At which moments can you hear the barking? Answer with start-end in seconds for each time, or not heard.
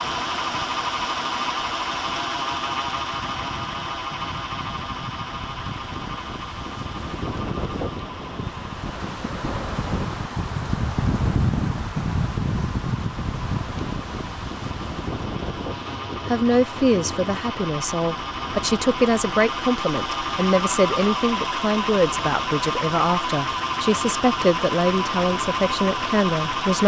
not heard.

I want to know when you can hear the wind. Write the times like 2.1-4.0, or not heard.
0.0-26.8.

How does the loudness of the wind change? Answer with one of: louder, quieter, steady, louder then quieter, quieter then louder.
louder then quieter.